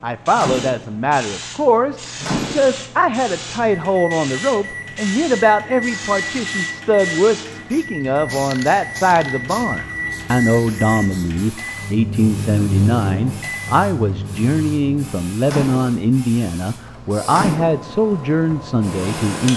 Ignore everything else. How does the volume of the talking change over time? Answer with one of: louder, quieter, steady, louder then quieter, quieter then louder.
steady.